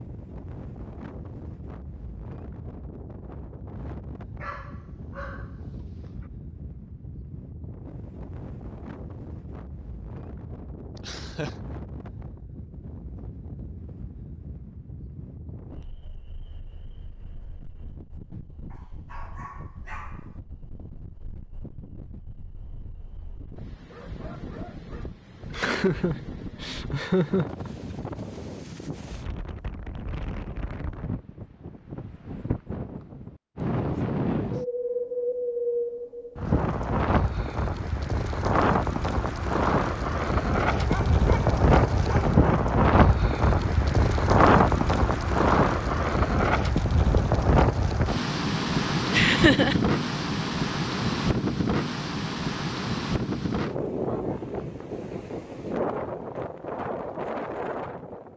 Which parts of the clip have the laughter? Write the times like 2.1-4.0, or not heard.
10.9-11.6, 25.5-27.7, 49.1-49.8.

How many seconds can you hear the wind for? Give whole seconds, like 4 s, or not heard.
58 s.